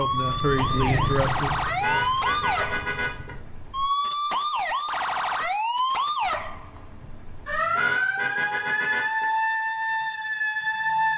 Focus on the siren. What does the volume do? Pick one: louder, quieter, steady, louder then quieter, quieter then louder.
steady.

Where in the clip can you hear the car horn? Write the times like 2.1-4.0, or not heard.
1.8-3.4, 7.8-9.2.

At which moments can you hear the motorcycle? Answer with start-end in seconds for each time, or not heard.
0.0-3.5.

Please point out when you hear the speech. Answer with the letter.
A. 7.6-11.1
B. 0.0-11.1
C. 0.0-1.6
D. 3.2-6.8
C.